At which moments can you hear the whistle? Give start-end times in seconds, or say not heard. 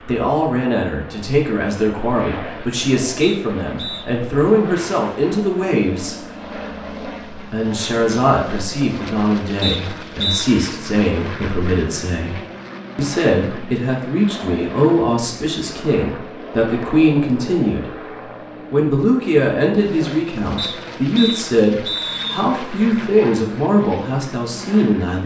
3.2-4.0, 9.6-10.4, 20.6-22.4.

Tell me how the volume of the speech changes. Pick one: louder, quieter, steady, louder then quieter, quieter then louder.
steady.